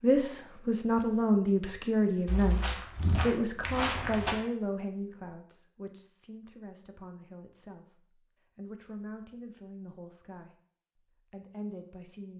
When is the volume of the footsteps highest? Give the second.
4 s.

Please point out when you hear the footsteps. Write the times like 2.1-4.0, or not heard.
2.2-4.3.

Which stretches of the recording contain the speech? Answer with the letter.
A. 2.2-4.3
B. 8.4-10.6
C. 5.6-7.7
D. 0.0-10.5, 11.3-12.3
D.